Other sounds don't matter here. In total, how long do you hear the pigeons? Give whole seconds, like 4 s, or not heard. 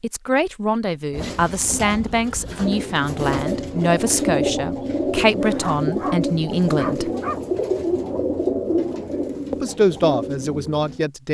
10 s.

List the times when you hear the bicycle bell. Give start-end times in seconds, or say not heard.
not heard.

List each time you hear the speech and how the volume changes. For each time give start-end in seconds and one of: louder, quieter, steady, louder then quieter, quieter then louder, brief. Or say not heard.
0.0-7.1 steady
9.5-11.3 brief.